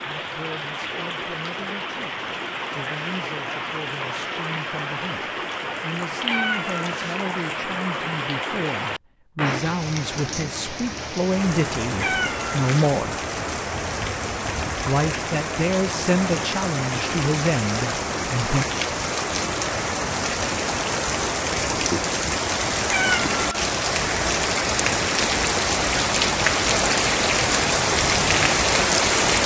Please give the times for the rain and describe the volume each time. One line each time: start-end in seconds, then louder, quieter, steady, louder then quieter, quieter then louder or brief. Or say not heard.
0.0-29.4 louder.